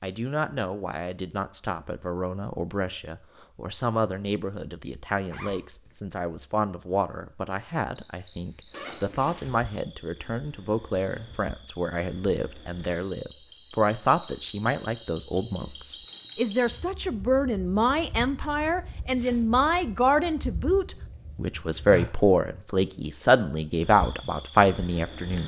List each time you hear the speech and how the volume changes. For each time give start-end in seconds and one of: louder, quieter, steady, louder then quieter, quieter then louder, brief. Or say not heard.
0.0-25.4 louder.